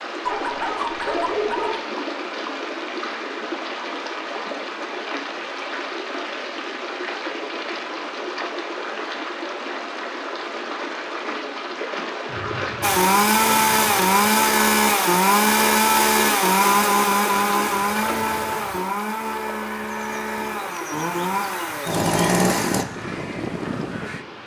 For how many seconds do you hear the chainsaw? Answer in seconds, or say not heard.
10 s.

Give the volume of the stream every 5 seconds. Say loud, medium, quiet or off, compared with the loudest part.
loud, loud, loud, loud, medium.